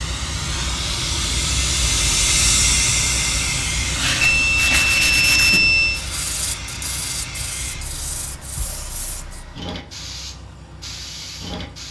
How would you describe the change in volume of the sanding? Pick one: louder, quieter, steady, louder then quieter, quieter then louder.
quieter.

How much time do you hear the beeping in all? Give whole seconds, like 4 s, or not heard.
2 s.